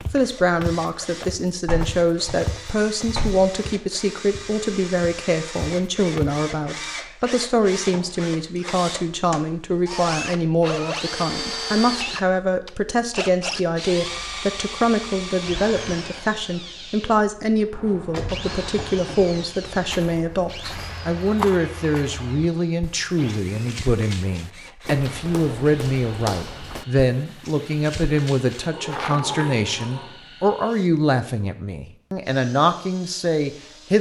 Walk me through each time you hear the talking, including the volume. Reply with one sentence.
You can hear the talking from 0.1 to 33.9 s, at a steady volume.